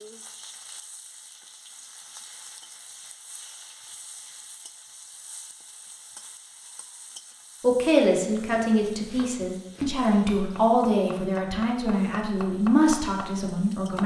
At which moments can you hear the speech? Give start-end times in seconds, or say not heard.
7.6-14.0.